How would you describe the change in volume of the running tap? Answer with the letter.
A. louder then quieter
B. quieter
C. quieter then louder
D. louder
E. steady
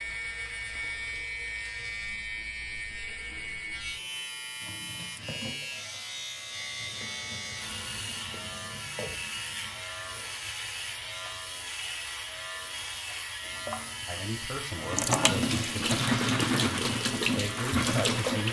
D.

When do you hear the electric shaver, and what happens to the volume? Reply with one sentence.
You can hear the electric shaver from 0.0 to 18.4 s, at a steady volume.